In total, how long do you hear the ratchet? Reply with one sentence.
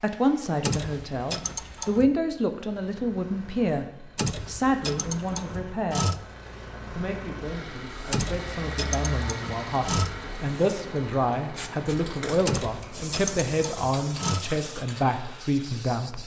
The ratchet can be heard for 8 seconds in total.